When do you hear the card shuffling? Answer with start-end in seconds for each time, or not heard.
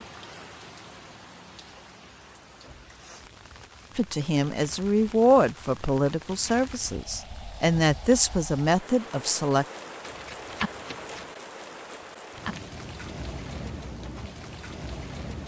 10.0-11.3.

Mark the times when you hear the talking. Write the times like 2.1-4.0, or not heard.
4.0-9.7.